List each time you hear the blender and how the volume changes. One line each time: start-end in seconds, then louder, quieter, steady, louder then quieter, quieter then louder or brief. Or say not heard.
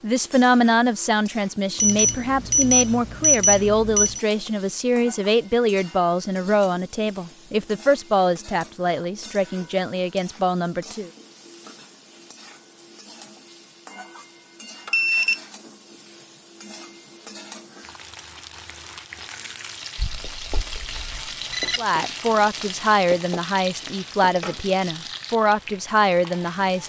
not heard.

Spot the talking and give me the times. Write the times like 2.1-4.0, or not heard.
0.0-11.1, 21.8-26.8.